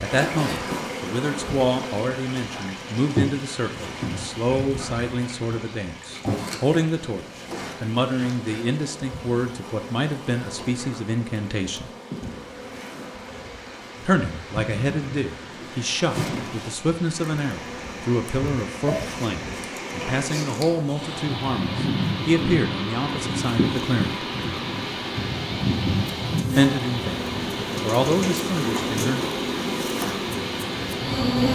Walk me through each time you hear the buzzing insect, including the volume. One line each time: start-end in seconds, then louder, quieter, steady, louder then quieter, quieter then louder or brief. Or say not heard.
0.0-31.5 quieter then louder.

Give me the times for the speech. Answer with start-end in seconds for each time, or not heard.
0.0-11.9, 14.1-24.2, 26.6-29.2.